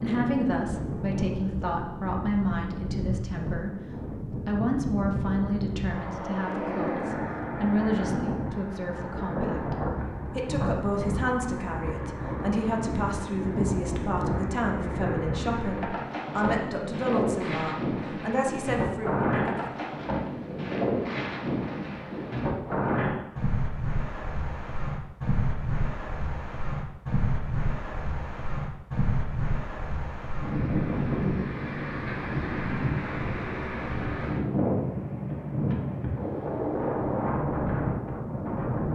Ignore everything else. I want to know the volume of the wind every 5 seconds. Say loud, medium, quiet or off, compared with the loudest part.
medium, loud, loud, loud, loud, loud, loud, loud.